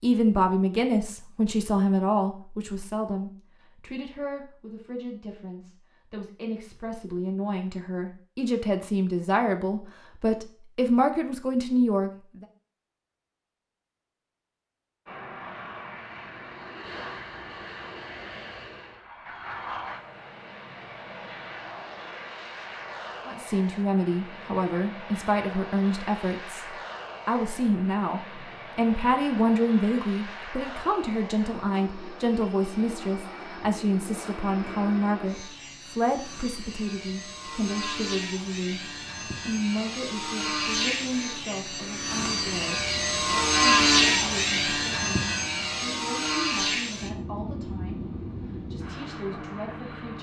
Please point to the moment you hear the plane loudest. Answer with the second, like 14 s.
44 s.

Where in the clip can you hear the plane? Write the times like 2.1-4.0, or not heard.
15.1-50.1.